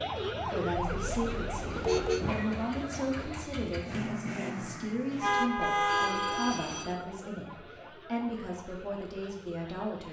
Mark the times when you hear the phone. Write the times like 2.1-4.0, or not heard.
1.7-2.5, 5.8-7.0.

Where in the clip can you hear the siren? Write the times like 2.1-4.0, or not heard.
0.0-3.5, 5.3-10.0.